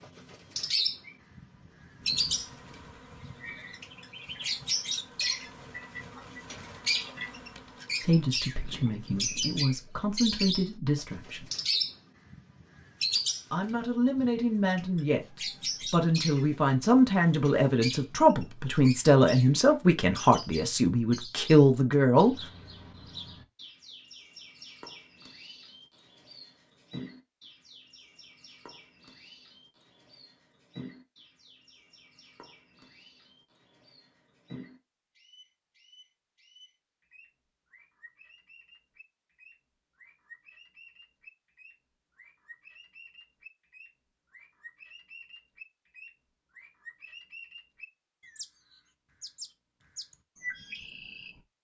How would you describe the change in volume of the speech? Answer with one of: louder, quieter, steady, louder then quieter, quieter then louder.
louder.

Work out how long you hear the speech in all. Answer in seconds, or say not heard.
12 s.